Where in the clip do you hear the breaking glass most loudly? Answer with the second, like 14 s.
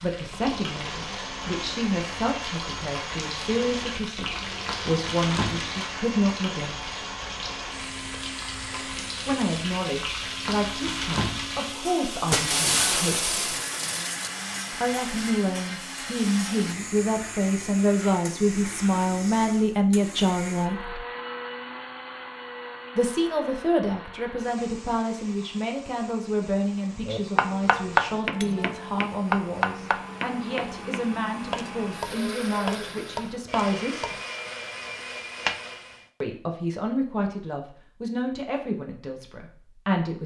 13 s.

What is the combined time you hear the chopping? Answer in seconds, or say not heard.
8 s.